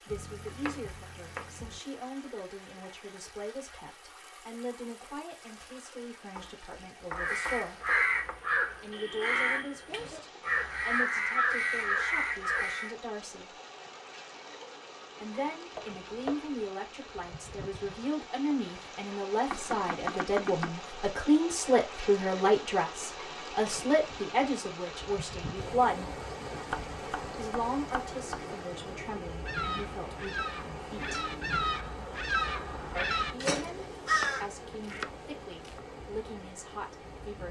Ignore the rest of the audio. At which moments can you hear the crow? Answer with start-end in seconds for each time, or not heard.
7.2-12.9, 29.4-35.0.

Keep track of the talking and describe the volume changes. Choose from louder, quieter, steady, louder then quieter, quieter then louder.
louder then quieter.